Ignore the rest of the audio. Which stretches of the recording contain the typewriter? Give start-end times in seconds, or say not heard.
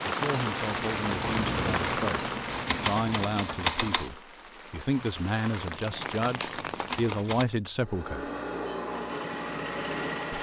2.5-4.1, 5.8-7.5.